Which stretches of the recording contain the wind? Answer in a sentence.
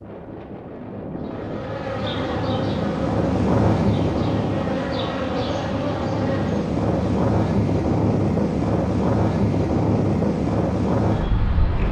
The wind can be heard from 0.0 to 11.8 s.